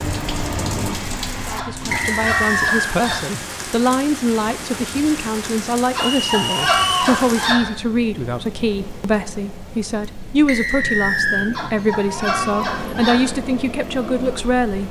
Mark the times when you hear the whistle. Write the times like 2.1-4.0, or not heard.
1.9-3.0, 6.0-6.9, 10.4-11.5.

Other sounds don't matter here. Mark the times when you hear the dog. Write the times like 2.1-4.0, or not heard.
1.6-3.3, 6.0-7.7, 11.5-13.3.